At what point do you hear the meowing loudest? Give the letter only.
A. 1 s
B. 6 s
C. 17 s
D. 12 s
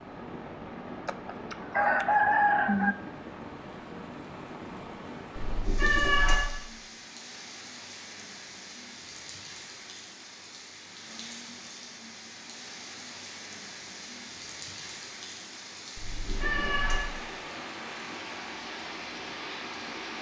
B.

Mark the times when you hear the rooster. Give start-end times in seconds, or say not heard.
1.1-3.0.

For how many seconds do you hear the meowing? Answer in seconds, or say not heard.
2 s.